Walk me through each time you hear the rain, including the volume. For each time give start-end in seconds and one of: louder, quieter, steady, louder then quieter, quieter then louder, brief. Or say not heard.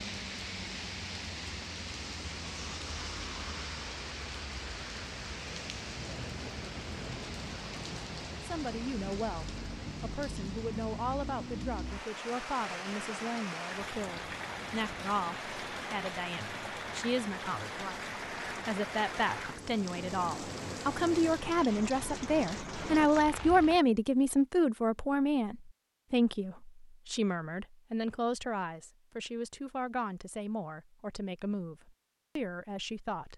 0.0-23.8 steady.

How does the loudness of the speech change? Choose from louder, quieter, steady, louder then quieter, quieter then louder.
louder then quieter.